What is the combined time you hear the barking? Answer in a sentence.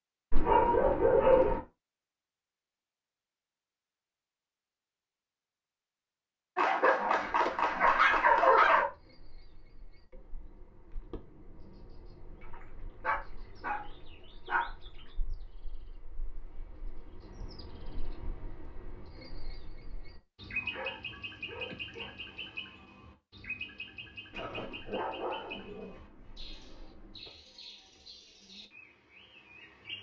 You can hear the barking for 11 seconds altogether.